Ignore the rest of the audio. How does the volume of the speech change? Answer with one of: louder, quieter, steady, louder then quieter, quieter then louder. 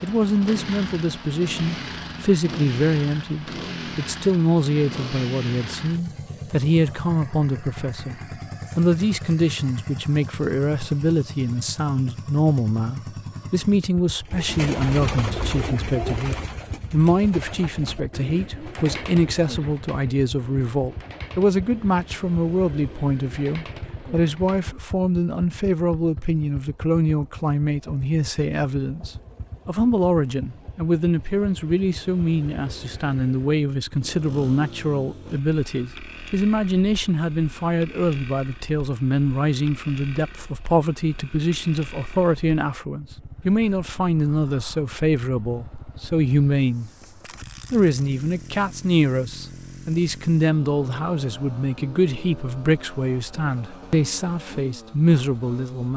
steady.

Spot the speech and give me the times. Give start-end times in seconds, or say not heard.
0.0-8.2, 8.8-46.9, 47.7-55.9.